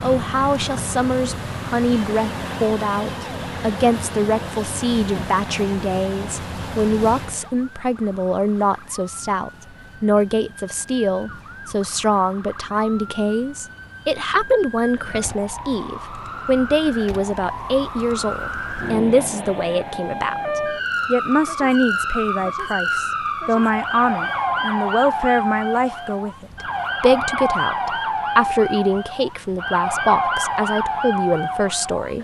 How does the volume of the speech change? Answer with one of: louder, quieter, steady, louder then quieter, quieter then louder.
steady.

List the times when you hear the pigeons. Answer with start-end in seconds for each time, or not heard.
not heard.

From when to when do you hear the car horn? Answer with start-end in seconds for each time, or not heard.
not heard.